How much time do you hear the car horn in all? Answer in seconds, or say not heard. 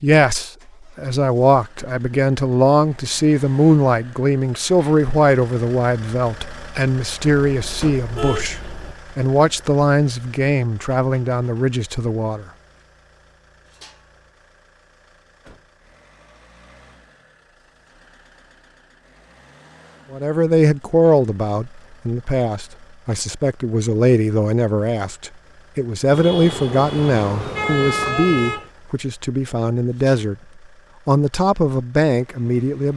4 s.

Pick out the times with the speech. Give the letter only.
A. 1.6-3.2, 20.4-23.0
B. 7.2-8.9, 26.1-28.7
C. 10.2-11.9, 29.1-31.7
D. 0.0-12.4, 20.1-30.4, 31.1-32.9
D.